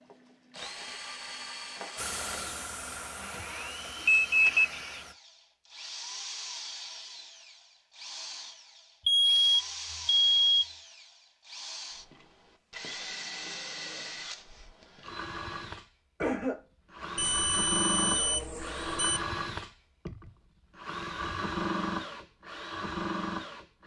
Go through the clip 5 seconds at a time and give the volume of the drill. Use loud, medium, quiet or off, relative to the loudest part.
medium, medium, medium, loud, loud.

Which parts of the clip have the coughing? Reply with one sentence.
The coughing can be heard from 16.2 to 17.1 s.